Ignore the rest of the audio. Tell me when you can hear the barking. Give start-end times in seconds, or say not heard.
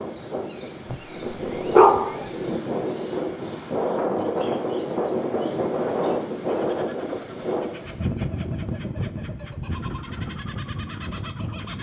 1.7-2.2.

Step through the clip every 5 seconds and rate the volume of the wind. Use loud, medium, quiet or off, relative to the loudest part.
loud, loud, medium.